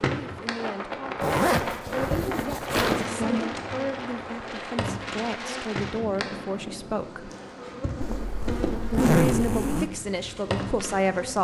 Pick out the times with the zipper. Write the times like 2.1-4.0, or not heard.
1.2-3.0, 8.0-9.9.